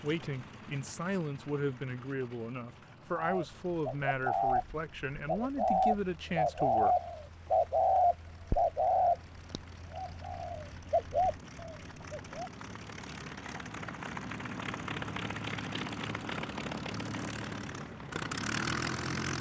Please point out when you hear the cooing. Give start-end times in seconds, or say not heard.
3.1-12.5.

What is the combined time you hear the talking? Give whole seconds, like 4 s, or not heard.
7 s.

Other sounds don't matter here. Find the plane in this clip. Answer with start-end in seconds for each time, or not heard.
0.0-19.3.